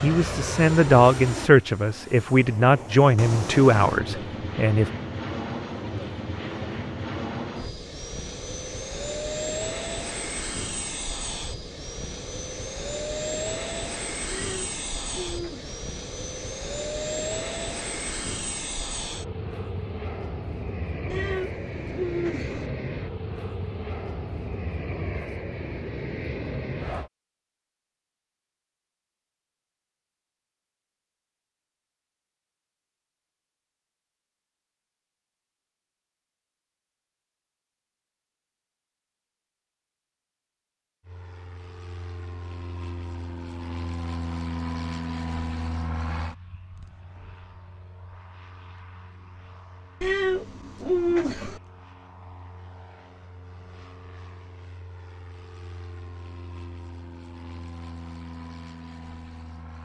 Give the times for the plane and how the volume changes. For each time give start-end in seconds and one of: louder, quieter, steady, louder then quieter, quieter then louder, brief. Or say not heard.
0.0-27.1 steady
41.0-59.8 quieter then louder.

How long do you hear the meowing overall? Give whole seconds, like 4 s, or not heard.
5 s.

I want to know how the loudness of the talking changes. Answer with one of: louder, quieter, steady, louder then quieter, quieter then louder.
quieter.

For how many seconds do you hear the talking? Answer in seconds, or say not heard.
5 s.